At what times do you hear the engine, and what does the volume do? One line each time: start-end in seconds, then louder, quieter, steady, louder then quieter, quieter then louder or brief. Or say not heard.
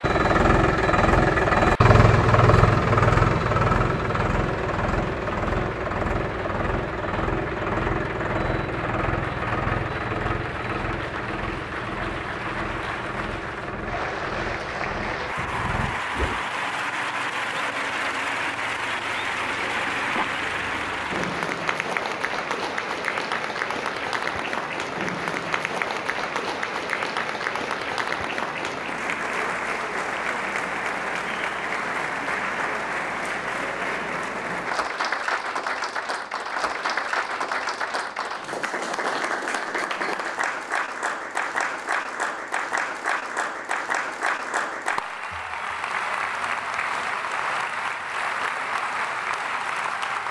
0.0-21.4 quieter.